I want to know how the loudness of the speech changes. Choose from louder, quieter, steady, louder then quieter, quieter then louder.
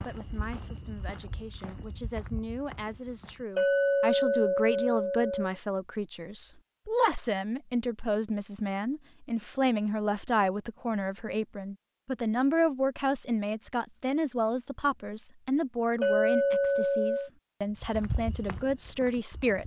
louder.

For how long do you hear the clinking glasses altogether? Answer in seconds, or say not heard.
3 s.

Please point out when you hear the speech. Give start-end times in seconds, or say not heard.
0.0-19.6.